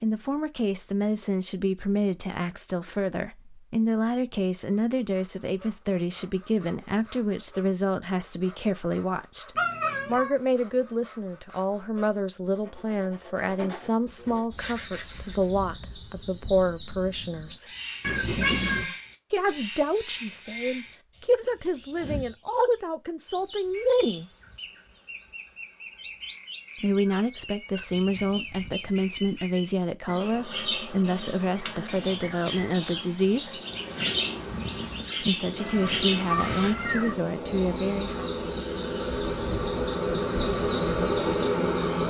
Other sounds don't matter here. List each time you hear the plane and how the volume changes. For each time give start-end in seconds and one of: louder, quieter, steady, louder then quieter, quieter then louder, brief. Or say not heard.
33.5-42.0 louder.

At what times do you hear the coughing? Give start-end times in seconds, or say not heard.
not heard.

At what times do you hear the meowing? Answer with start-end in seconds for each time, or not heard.
9.6-10.3, 18.0-18.9, 35.5-37.2.